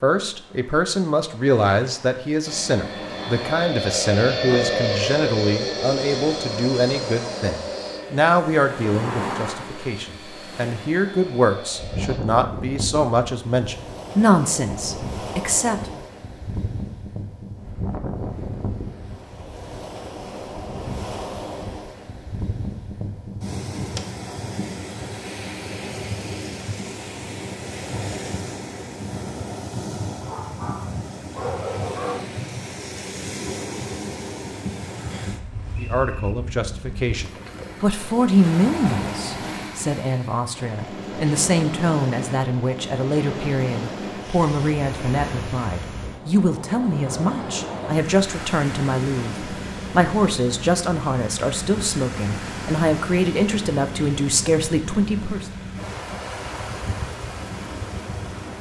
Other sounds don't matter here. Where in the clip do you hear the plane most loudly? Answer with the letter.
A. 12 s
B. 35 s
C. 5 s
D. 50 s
C.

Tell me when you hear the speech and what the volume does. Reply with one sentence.
You can hear the speech from 0.0 to 16.0 s, at a steady volume; and from 35.8 to 55.5 s, at a steady volume.